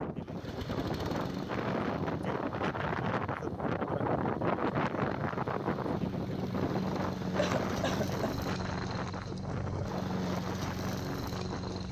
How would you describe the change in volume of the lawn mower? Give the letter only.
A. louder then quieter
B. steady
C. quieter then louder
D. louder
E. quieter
C.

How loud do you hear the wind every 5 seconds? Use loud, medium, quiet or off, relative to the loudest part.
loud, loud, medium.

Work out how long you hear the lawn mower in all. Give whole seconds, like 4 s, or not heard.
12 s.